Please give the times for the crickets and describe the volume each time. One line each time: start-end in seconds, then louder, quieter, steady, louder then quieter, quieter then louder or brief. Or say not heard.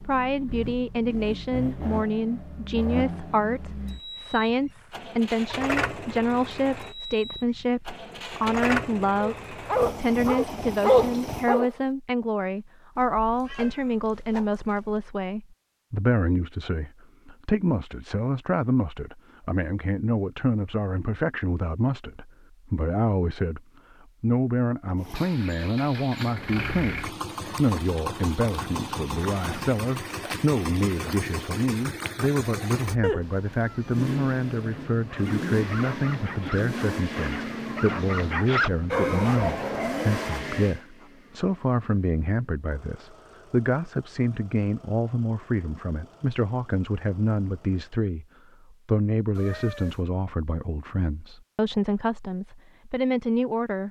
not heard.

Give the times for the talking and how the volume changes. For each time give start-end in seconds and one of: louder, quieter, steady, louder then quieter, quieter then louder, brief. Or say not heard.
0.1-23.6 steady
24.2-53.8 steady.